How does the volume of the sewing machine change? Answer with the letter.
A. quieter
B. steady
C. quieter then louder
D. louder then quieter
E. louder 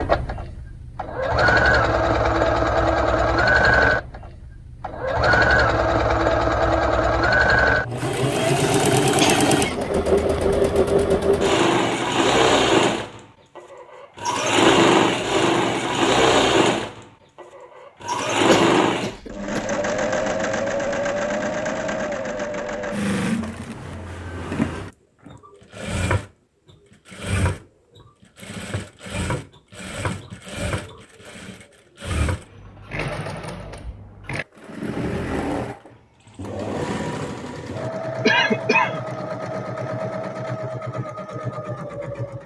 A.